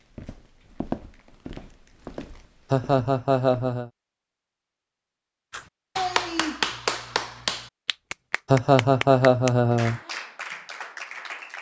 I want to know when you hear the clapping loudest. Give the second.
7 s.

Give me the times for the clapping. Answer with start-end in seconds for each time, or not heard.
5.5-11.5.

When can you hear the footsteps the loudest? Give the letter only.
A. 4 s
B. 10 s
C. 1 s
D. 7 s
C.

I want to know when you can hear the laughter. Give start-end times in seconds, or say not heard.
2.7-3.9, 8.5-10.0.